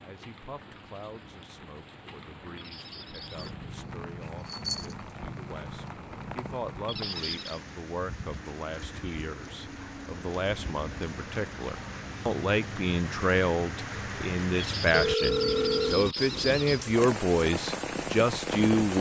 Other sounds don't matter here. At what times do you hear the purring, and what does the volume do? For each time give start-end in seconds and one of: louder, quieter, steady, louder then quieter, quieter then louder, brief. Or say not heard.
3.1-7.2 louder then quieter.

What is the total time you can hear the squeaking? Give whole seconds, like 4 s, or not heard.
4 s.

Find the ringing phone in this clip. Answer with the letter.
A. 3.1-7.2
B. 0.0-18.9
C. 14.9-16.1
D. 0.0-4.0
C.